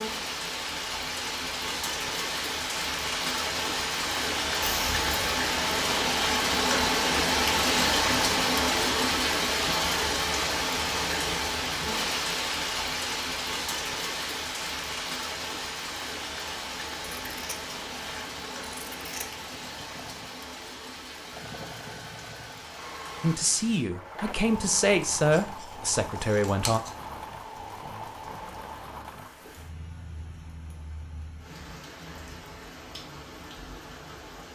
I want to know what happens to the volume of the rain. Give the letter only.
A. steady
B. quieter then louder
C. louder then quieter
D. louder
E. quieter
E.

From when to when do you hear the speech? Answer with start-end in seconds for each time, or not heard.
23.2-26.8.